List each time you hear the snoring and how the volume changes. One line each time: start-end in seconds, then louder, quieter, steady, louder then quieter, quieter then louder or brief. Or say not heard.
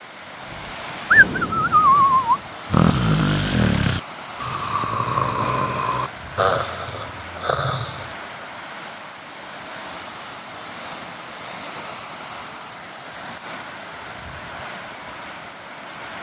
1.1-8.4 quieter.